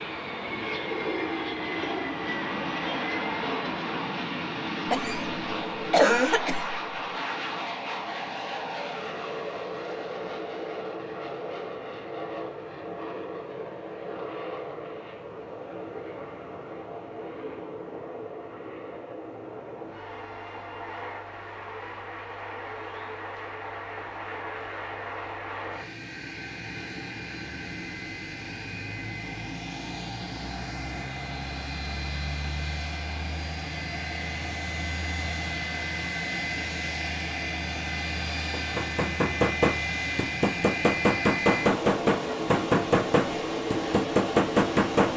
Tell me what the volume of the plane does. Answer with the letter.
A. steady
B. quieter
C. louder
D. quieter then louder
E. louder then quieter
D.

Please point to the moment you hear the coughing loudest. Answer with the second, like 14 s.
6 s.